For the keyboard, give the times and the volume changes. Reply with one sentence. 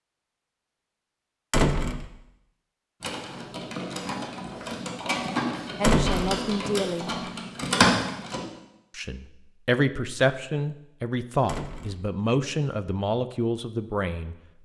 The keyboard can be heard from 3.0 to 8.4 s, getting louder.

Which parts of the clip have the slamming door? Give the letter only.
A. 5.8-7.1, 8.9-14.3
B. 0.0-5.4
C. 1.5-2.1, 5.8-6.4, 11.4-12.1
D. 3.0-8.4
C.